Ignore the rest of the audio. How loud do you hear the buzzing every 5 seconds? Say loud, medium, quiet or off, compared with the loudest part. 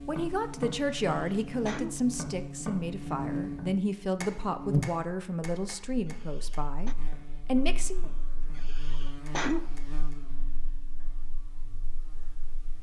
loud, medium, quiet.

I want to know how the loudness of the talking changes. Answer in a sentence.
The loudness of the talking stays about the same.